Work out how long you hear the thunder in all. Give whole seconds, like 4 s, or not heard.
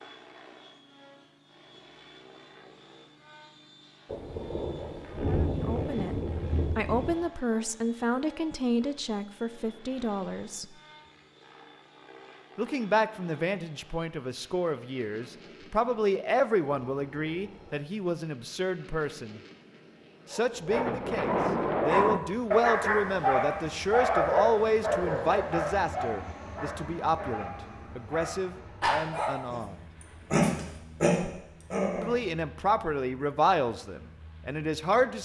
5 s.